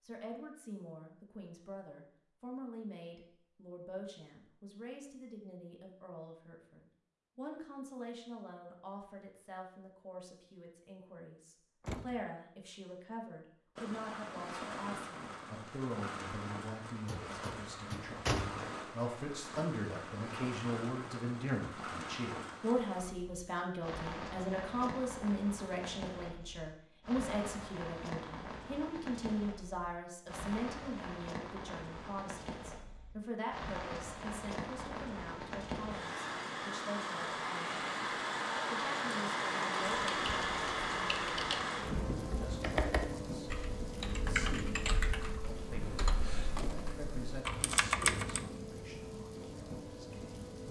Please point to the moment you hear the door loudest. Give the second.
18 s.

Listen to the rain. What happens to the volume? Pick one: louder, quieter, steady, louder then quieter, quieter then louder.
louder then quieter.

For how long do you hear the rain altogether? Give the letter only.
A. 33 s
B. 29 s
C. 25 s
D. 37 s
D.